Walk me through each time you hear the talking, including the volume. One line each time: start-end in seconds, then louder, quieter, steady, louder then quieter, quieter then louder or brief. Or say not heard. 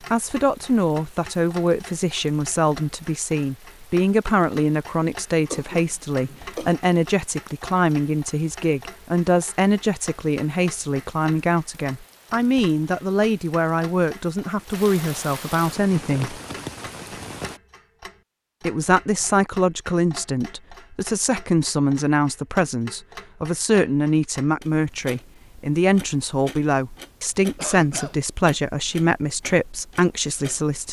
0.1-16.4 steady
18.6-30.8 steady.